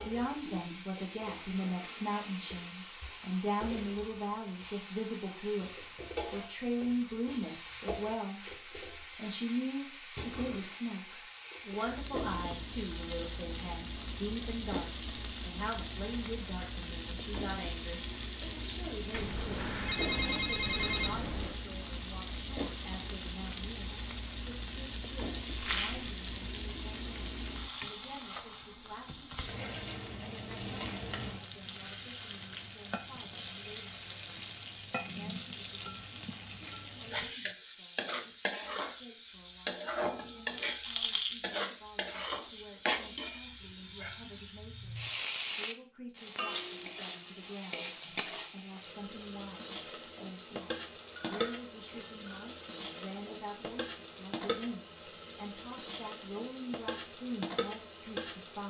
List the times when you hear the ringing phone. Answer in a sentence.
The ringing phone can be heard from 19.1 to 21.6 s and from 51.1 to 52.4 s.